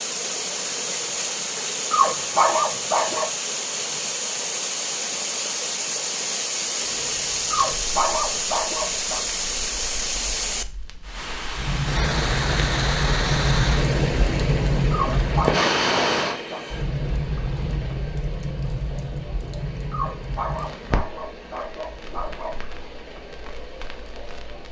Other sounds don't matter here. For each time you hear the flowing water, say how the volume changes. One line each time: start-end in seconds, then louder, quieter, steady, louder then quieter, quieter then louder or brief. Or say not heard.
0.0-24.6 quieter.